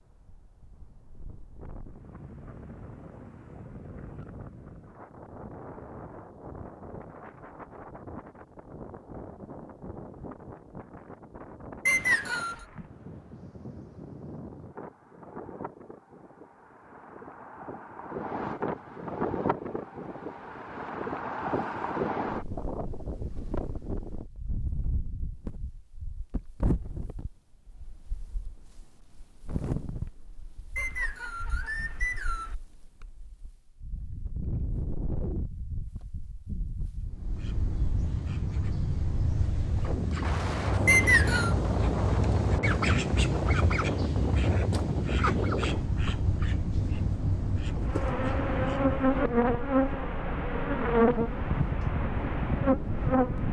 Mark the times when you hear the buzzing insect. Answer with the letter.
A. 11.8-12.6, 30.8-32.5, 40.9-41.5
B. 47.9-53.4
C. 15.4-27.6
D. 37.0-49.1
B.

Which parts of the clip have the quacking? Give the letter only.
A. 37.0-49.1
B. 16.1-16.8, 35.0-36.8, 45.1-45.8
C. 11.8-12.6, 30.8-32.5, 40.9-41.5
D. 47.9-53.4
A.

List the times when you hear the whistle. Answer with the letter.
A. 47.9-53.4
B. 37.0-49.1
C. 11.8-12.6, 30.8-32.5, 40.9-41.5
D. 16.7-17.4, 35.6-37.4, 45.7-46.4
C.